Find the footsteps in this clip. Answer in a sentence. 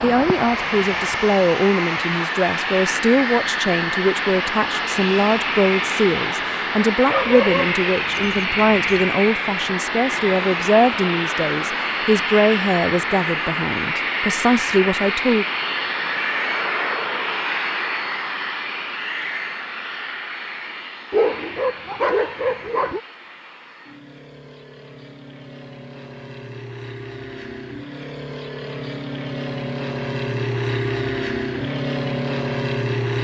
The footsteps can't be heard in this clip.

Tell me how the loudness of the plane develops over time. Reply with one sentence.
The volume of the plane goes down, then up.